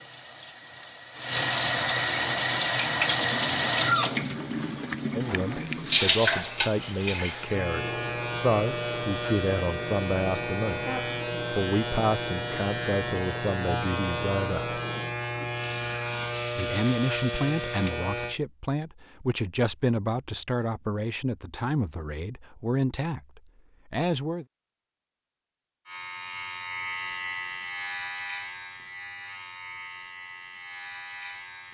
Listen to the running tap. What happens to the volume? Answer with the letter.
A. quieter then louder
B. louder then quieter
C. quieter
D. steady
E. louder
C.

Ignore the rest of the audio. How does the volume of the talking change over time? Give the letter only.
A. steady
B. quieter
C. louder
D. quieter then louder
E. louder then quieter
A.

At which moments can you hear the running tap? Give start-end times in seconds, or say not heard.
0.0-17.9.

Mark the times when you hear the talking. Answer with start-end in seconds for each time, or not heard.
5.1-10.8, 11.5-14.8, 16.6-24.4.